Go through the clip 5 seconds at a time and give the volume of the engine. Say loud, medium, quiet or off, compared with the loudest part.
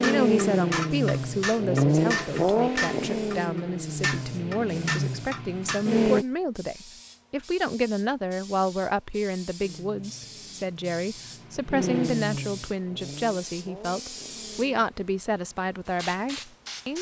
loud, loud, medium, off.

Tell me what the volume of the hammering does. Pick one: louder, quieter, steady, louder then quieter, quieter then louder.
steady.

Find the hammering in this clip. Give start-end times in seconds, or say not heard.
0.0-5.8.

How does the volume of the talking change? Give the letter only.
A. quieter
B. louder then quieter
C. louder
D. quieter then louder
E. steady
E.